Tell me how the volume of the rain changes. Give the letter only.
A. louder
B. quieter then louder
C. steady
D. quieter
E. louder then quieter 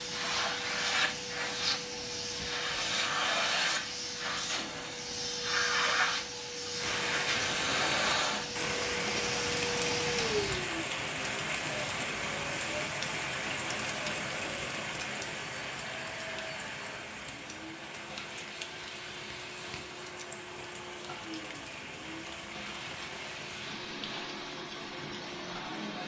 D.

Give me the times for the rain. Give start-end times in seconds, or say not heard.
6.8-26.0.